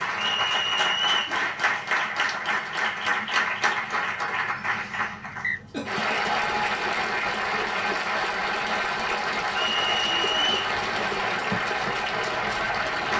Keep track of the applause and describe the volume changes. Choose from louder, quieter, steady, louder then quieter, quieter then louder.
steady.